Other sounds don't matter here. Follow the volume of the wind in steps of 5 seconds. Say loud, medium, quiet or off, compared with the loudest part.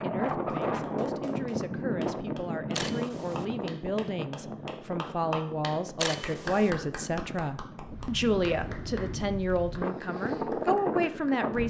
loud, medium, loud.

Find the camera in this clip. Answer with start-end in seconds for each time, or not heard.
2.7-3.5, 6.0-6.7.